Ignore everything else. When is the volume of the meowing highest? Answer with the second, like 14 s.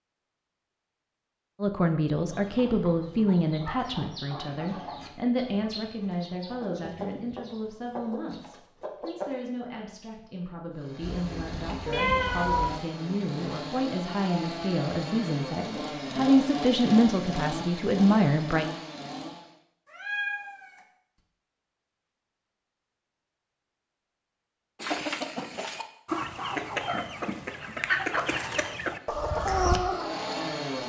12 s.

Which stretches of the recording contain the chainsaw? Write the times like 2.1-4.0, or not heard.
10.8-19.6, 28.9-30.8.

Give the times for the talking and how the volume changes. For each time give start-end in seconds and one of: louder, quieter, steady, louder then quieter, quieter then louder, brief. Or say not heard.
1.6-18.6 quieter then louder.